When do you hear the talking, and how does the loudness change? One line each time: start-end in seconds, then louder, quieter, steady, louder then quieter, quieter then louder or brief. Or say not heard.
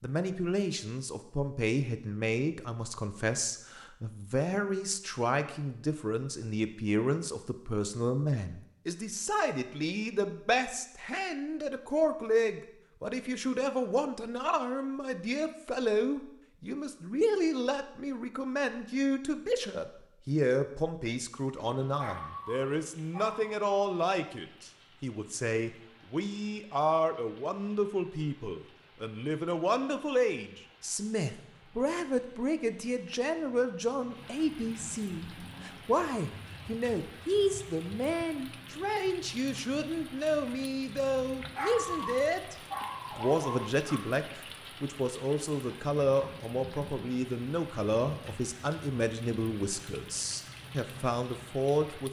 0.0-52.0 steady.